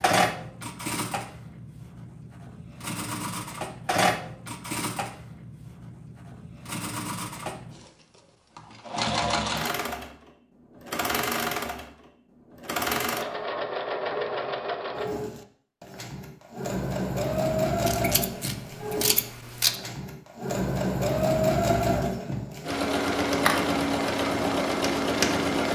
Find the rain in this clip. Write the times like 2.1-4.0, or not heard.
not heard.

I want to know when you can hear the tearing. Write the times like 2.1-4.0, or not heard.
not heard.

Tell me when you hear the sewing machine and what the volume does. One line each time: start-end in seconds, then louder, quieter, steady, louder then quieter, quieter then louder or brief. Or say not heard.
0.0-25.7 louder.